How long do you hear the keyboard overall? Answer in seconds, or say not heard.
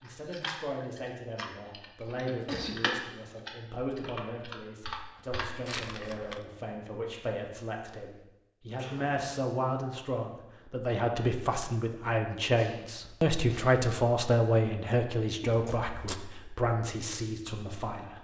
6 s.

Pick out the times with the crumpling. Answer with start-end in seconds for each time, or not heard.
5.7-6.5, 15.4-16.2.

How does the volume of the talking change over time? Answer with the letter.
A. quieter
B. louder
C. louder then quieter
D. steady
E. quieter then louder
B.